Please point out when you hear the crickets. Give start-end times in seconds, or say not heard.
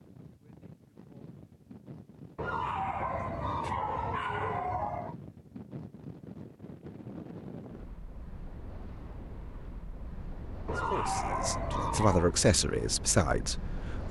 not heard.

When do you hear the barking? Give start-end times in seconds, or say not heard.
2.4-5.2, 10.7-12.3.